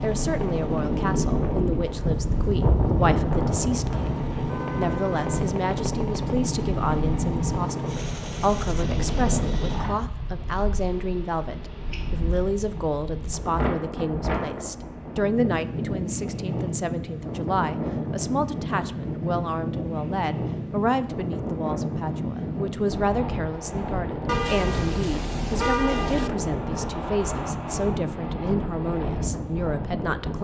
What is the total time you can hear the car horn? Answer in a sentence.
The car horn can be heard for 3 seconds in total.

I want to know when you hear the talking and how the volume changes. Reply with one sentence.
You can hear the talking from 0.0 to 30.3 s, at a steady volume.